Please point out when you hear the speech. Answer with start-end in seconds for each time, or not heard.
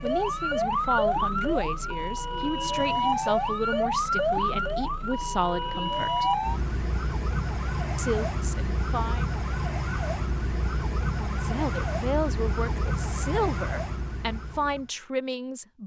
0.0-6.2, 8.0-9.2, 11.1-15.8.